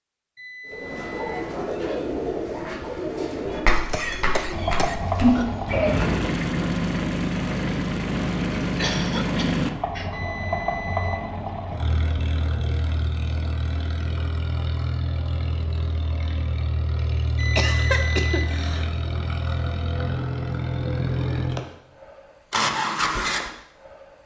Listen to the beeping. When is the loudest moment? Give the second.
18 s.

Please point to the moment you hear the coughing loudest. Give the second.
18 s.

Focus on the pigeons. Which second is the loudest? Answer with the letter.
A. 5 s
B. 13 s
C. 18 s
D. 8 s
A.